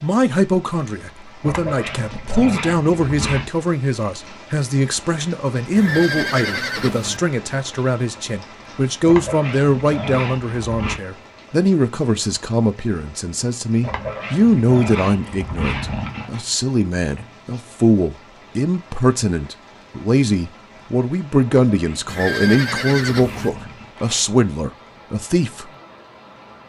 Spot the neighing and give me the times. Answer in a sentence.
You can hear the neighing from 5.8 to 7.2 s and from 22.1 to 23.5 s.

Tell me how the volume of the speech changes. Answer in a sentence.
The loudness of the speech stays about the same.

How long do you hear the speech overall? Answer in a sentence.
The speech can be heard for 26 seconds in total.